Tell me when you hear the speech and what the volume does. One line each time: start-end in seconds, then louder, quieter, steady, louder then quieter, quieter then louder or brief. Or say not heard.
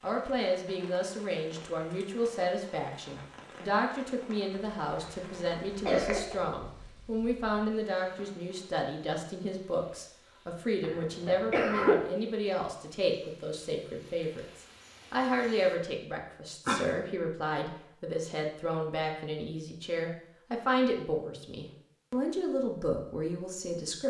0.0-24.0 steady.